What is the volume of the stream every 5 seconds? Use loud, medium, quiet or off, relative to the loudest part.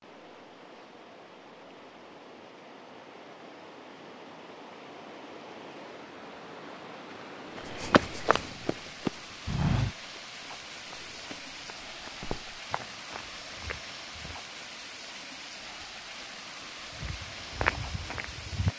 medium, loud, loud, loud.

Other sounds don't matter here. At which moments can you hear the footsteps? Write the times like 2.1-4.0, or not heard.
7.5-14.4, 16.9-18.7.